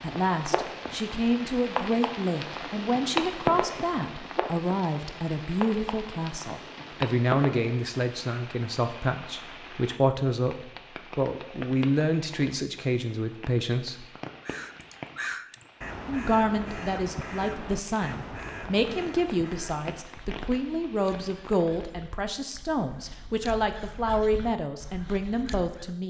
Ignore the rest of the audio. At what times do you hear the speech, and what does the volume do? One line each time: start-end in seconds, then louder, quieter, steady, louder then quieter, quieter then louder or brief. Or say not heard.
0.0-14.1 steady
16.1-26.0 steady.